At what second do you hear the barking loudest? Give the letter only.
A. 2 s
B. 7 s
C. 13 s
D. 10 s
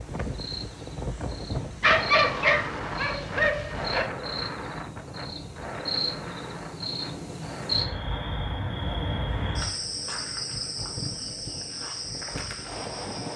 A.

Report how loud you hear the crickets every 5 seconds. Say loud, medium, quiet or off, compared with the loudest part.
medium, loud, loud.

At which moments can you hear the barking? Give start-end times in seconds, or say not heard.
1.8-4.1.